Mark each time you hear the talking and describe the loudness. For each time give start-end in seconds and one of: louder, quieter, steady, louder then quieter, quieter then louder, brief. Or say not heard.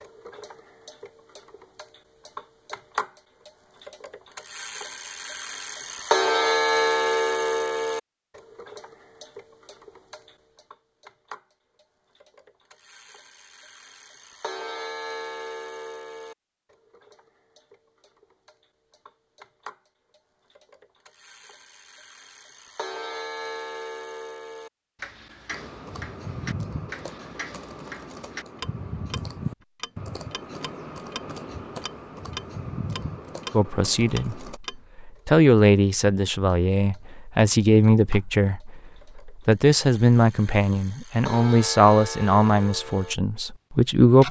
33.5-44.2 steady.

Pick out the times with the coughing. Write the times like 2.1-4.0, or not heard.
not heard.